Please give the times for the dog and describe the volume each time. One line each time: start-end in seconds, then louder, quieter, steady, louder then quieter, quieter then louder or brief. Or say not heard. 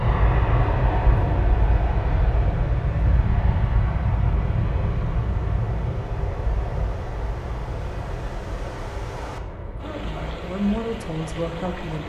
not heard.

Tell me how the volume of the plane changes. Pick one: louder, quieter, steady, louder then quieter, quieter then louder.
quieter.